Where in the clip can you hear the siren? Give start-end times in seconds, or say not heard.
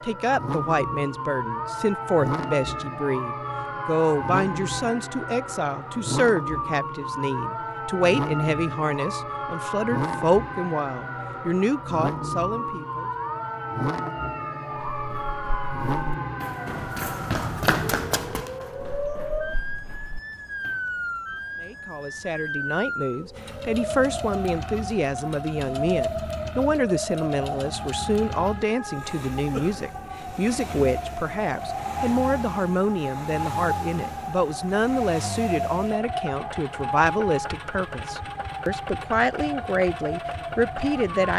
0.0-41.3.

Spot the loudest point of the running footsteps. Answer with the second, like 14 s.
18 s.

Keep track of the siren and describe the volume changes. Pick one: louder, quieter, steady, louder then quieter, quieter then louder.
steady.